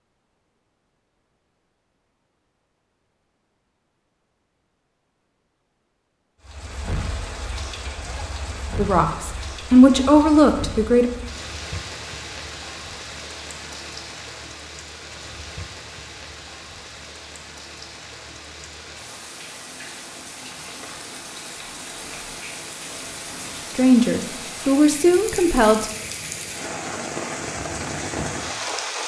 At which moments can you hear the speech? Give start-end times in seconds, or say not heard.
8.8-11.1, 23.8-25.9.